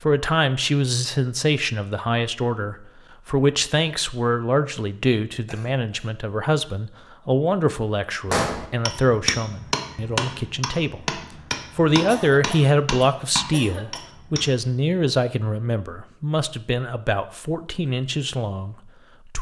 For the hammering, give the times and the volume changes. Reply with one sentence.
The hammering can be heard from 8.2 to 14.6 s, getting quieter.